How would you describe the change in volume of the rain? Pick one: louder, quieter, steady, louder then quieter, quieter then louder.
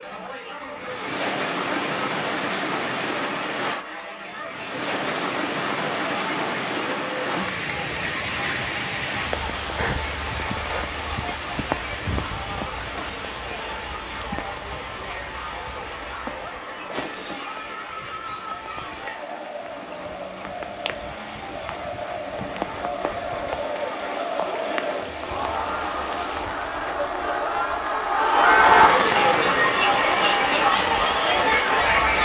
quieter then louder.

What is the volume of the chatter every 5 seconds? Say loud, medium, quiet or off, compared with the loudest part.
quiet, quiet, quiet, quiet, medium, loud, loud.